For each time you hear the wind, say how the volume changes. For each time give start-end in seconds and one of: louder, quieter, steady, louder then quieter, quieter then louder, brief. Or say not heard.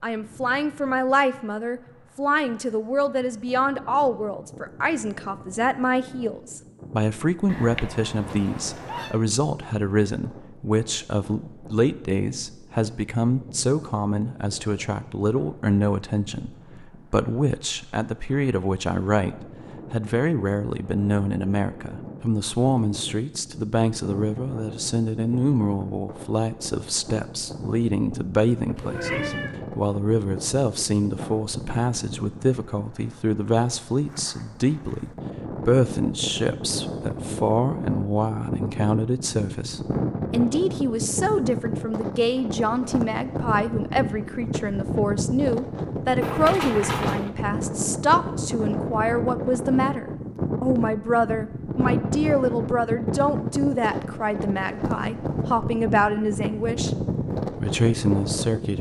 0.0-58.7 louder.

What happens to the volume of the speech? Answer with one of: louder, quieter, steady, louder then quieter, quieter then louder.
steady.